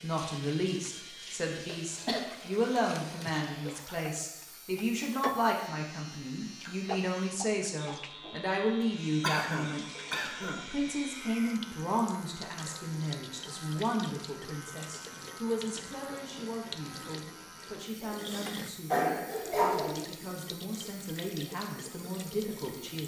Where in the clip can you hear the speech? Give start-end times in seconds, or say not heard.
0.0-23.0.